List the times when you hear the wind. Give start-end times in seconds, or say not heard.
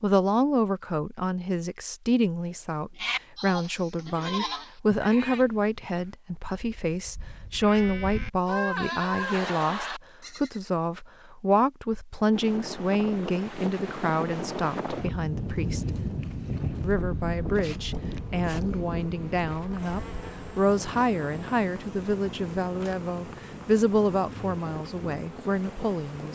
12.3-26.3.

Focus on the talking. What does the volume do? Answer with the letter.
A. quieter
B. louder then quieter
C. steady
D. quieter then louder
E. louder
C.